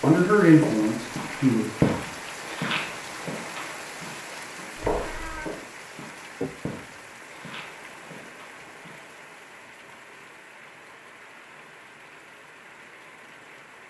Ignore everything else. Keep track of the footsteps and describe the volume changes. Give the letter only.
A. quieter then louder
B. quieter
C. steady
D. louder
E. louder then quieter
B.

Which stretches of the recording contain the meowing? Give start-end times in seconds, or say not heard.
4.8-5.5.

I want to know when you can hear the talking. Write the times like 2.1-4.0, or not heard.
0.0-1.6.